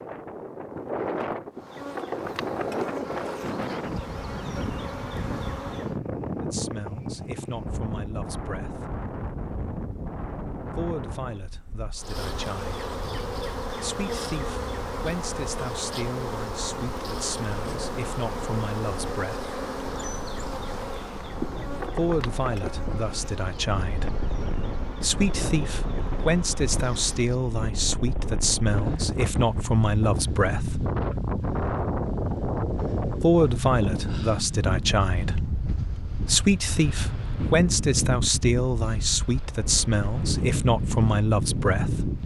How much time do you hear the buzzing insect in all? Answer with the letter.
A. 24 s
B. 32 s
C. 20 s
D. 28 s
C.